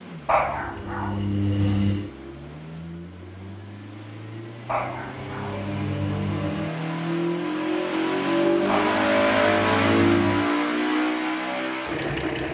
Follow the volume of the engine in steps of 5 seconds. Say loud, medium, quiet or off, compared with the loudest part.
quiet, loud, loud.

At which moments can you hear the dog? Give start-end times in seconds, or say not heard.
0.2-2.1, 4.7-6.7, 8.7-10.5.